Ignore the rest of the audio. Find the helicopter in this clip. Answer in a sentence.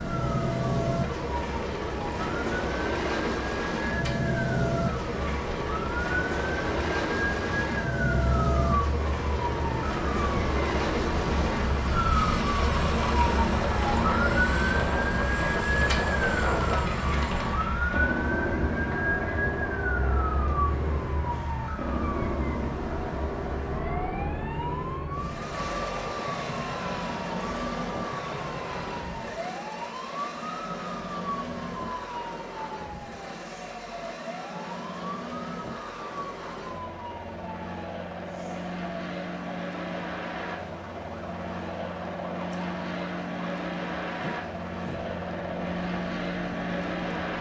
You can hear the helicopter from 0.0 to 47.3 s.